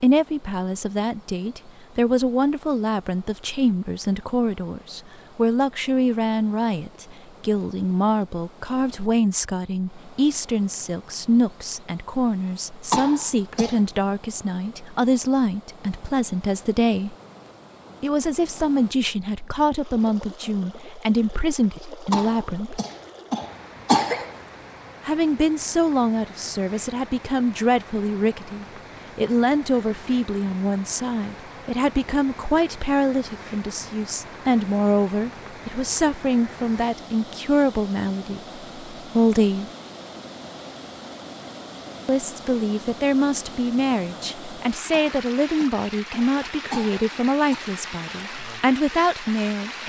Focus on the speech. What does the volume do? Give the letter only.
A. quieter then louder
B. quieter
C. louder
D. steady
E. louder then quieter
D.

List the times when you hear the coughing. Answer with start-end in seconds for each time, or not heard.
12.9-13.8, 22.1-24.4, 44.9-47.6.